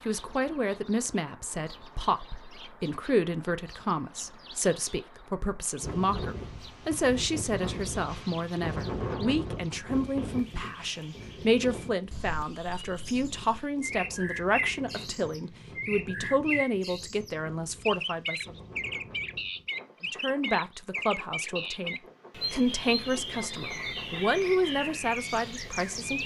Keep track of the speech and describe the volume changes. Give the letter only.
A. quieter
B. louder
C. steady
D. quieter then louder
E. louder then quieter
C.